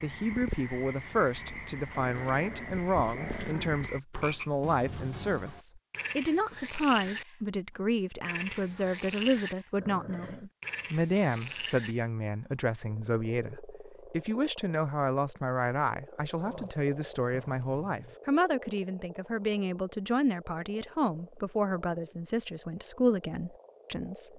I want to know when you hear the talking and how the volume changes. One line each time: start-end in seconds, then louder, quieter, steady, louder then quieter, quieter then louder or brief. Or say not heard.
0.0-24.3 steady.